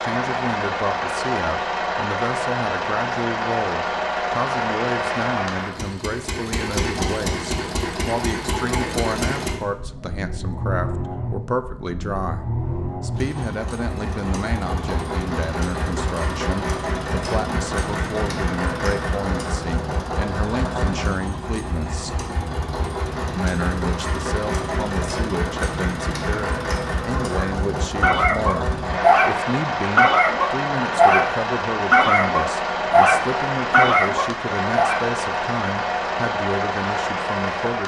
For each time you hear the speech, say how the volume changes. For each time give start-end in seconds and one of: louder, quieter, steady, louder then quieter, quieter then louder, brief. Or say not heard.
0.0-22.1 steady
23.4-37.8 steady.